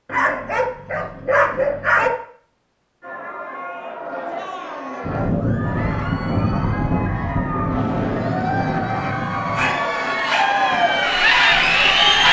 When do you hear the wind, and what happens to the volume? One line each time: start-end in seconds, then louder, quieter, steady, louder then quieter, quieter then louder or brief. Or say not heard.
5.0-12.2 quieter.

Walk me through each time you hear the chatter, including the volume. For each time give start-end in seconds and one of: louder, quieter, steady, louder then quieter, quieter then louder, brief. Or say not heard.
3.0-12.2 louder.